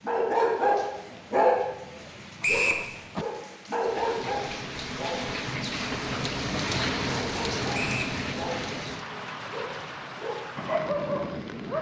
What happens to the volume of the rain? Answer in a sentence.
The volume of the rain goes up, then down.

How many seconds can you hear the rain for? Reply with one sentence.
You can hear the rain for 12 seconds altogether.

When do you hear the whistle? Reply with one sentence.
You can hear the whistle from 2.4 to 2.9 s and from 7.7 to 8.2 s.